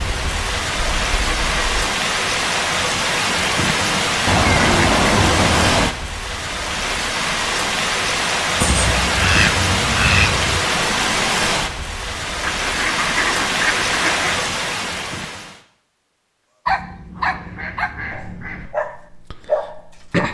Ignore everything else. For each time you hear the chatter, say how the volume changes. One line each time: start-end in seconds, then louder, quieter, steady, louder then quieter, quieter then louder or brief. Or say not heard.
not heard.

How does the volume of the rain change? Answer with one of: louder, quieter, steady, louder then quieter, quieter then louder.
steady.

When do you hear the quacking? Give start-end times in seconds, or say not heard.
0.8-1.8, 4.2-5.9, 8.6-10.6, 12.4-14.4, 16.6-18.7.